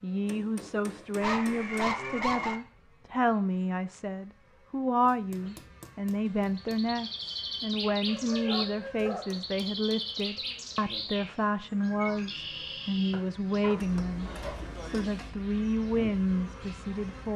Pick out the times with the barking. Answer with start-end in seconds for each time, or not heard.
1.2-2.6, 8.1-9.4, 13.6-15.0.